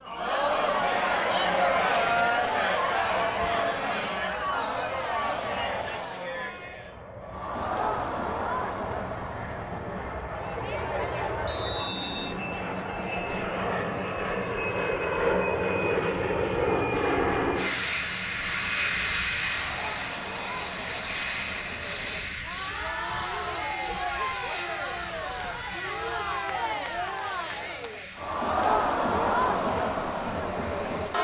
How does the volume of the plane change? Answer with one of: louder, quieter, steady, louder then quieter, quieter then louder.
louder then quieter.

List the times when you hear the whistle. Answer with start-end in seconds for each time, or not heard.
11.4-12.3.